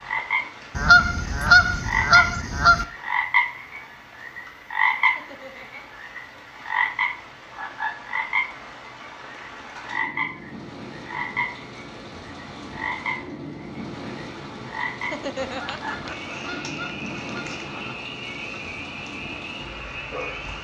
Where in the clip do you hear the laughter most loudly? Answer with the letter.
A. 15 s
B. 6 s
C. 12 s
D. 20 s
A.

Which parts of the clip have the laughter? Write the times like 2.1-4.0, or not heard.
5.0-6.0, 15.0-16.1.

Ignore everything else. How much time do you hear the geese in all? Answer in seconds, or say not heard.
5 s.